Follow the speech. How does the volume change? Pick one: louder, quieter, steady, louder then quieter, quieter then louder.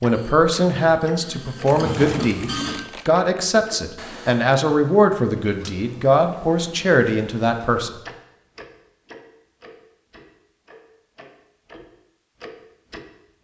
steady.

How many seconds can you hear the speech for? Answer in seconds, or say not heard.
8 s.